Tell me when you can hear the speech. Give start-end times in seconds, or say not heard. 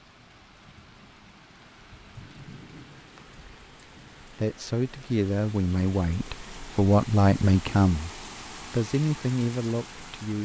4.2-10.4.